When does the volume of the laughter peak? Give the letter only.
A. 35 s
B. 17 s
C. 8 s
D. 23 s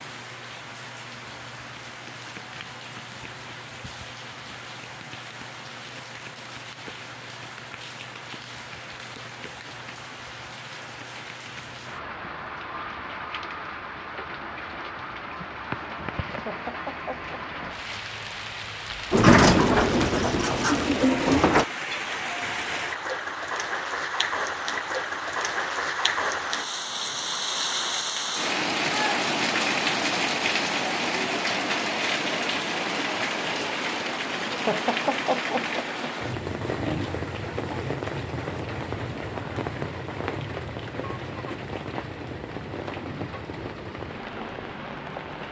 A.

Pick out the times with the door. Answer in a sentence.
You can hear the door from 19.1 to 21.6 s.